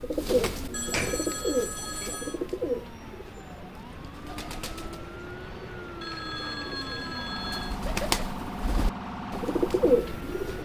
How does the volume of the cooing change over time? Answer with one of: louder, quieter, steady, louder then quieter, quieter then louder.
quieter then louder.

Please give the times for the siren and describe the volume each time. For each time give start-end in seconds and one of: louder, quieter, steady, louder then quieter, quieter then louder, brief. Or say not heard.
0.0-10.5 louder.